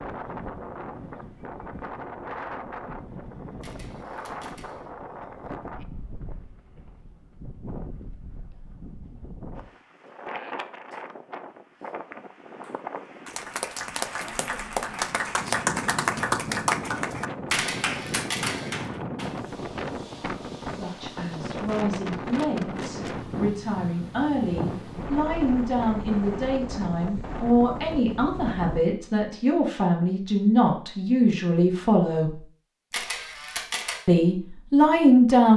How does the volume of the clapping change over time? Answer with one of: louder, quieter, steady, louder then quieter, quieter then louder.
louder then quieter.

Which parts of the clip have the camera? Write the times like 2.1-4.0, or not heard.
3.6-4.9, 17.5-18.9, 32.9-34.0.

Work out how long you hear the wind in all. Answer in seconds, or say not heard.
29 s.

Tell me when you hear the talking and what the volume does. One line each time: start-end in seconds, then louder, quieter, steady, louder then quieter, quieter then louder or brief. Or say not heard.
20.7-32.4 louder
34.0-35.5 brief.